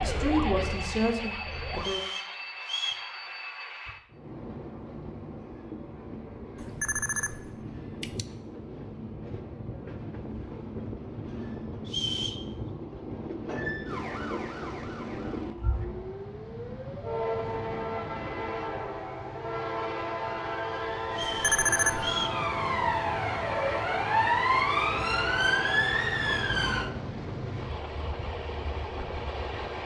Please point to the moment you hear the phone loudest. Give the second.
22 s.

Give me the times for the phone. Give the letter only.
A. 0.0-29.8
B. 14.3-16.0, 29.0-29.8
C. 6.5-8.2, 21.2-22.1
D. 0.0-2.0
C.